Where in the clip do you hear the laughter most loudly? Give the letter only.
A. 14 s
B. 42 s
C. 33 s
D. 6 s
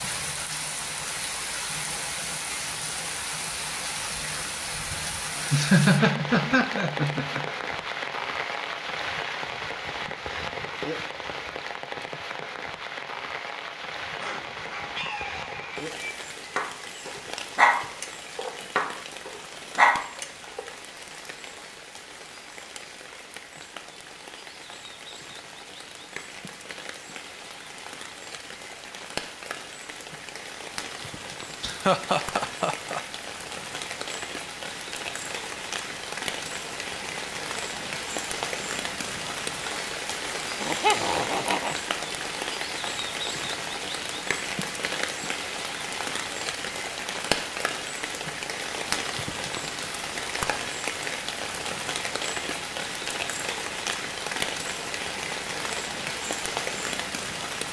D.